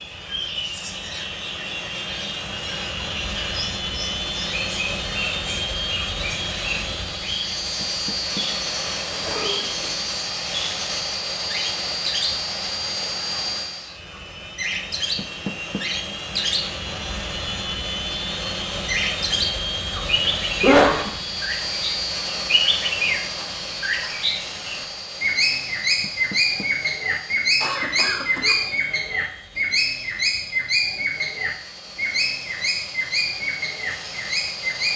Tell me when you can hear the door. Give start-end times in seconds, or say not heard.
7.8-8.4, 15.2-15.8, 26.0-26.7.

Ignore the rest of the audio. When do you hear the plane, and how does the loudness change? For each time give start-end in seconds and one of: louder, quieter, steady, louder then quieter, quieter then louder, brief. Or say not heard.
0.0-34.9 quieter.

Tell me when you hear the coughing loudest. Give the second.
21 s.